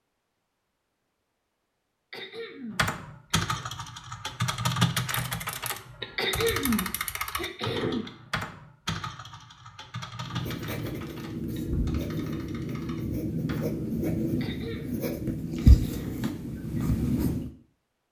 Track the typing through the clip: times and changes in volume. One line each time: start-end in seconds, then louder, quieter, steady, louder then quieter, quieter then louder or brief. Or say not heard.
2.7-13.8 quieter.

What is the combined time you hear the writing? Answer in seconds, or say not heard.
7 s.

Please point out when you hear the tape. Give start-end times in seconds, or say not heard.
not heard.